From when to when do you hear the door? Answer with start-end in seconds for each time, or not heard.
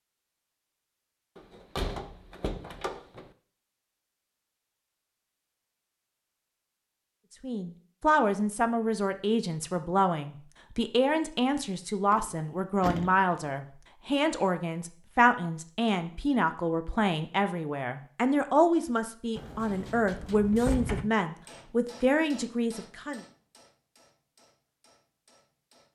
1.4-3.3, 12.1-13.3, 19.4-21.1.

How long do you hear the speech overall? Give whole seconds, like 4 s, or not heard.
16 s.